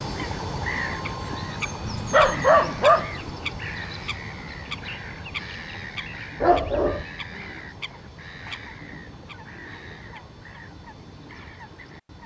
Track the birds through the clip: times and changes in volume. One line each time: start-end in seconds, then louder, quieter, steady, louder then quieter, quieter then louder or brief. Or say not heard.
0.0-12.2 quieter.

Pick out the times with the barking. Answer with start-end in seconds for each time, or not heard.
1.8-3.3, 6.4-7.0.